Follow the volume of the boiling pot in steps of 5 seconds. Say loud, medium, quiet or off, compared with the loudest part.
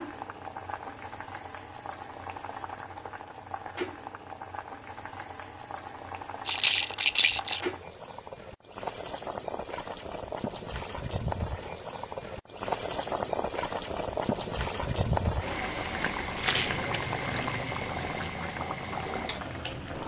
medium, medium, loud, loud.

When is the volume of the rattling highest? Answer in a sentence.
The loudest moment of the rattling is at 7 seconds.